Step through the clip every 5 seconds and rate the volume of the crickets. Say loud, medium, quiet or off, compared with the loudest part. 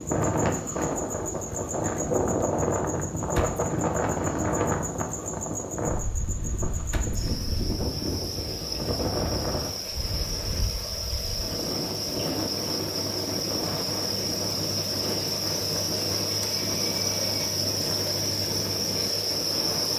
medium, medium, loud, loud.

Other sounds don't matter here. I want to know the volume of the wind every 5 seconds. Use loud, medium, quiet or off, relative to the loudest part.
loud, medium, medium, medium.